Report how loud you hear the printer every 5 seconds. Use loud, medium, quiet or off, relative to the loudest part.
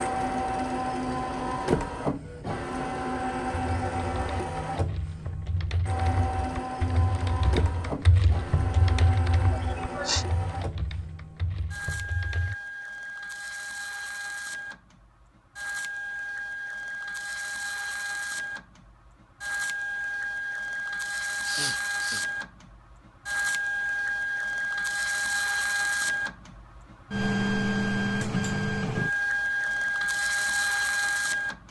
loud, medium, medium, medium, loud, loud, loud.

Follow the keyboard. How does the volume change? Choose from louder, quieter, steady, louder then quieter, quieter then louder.
louder then quieter.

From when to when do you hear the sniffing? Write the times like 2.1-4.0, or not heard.
9.5-10.2, 21.4-22.2.